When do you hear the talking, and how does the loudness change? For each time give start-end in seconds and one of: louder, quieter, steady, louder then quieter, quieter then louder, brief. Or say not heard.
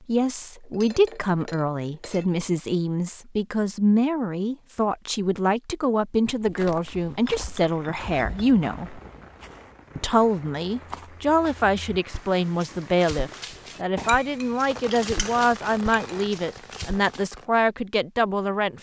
0.1-9.0 steady
9.9-18.7 steady.